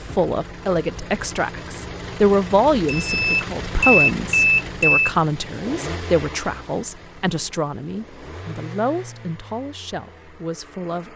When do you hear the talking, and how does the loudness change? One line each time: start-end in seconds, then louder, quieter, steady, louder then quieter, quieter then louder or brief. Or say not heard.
0.0-11.1 quieter.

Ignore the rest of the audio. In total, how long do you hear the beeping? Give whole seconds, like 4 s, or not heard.
2 s.